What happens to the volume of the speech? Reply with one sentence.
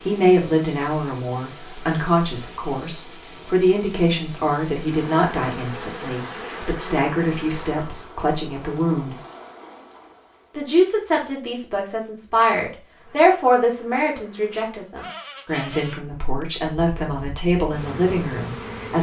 The loudness of the speech stays about the same.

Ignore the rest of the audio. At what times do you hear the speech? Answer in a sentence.
The speech can be heard from 0.0 to 9.2 s and from 10.6 to 18.9 s.